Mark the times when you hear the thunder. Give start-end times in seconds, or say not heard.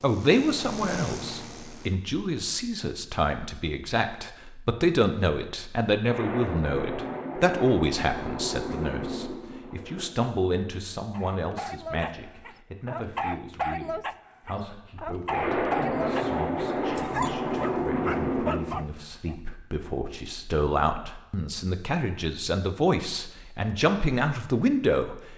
6.0-10.1, 15.3-18.8.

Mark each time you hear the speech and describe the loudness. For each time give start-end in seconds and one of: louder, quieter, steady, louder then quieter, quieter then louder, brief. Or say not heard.
0.0-25.3 quieter then louder.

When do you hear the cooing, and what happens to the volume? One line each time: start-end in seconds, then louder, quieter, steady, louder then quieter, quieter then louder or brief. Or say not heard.
not heard.